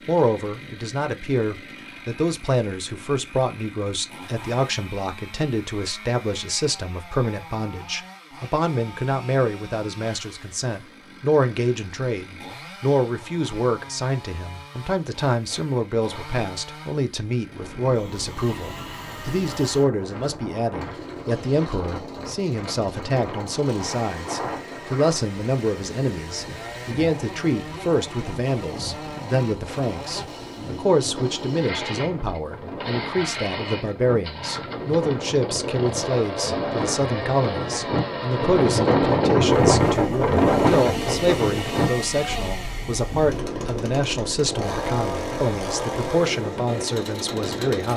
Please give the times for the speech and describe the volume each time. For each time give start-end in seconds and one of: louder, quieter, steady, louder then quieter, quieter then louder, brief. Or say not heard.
0.1-47.9 steady.